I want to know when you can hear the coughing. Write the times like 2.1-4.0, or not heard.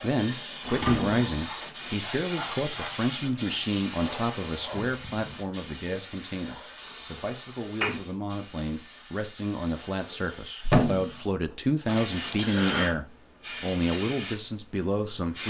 11.8-12.9.